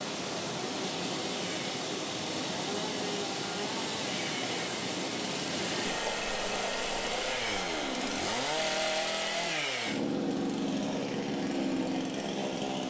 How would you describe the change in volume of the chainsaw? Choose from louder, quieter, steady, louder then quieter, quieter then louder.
louder.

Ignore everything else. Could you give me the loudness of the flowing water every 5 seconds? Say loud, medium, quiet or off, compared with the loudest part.
loud, loud, medium.